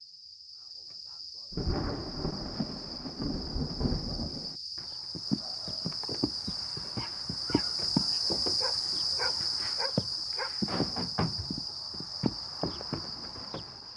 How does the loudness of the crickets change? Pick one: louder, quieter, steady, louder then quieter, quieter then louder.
louder then quieter.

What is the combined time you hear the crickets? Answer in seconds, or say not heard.
14 s.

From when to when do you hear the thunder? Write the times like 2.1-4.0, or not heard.
1.5-4.5.